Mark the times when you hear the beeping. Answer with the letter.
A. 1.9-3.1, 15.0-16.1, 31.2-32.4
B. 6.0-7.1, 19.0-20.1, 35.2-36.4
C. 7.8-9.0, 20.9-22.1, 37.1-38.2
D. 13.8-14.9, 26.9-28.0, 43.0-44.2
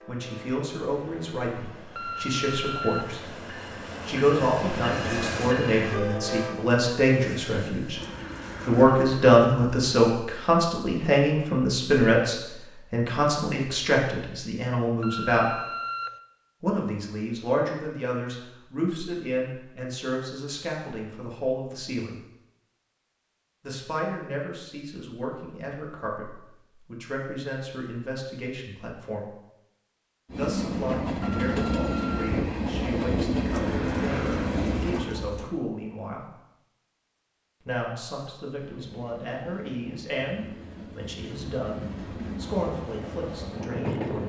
A.